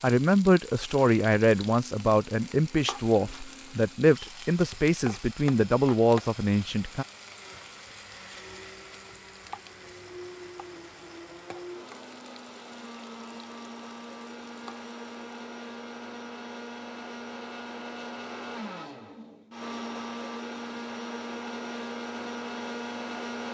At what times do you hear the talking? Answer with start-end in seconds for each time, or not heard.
0.0-7.0.